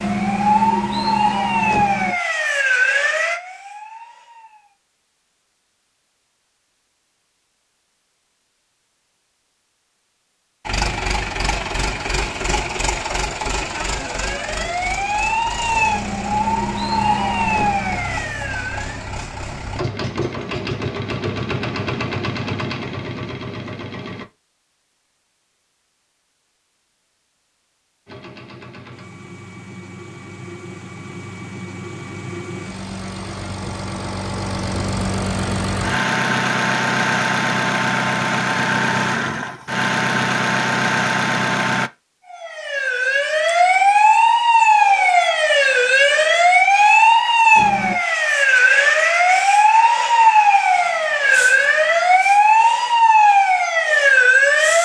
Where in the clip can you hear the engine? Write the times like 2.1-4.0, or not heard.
10.7-24.2, 28.1-41.9.